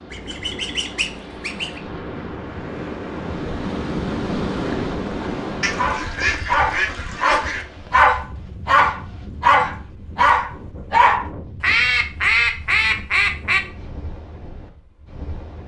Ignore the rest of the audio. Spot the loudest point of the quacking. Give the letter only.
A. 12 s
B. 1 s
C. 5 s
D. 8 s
A.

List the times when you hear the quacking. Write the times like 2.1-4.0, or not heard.
0.1-1.8, 5.6-7.7, 11.6-13.6.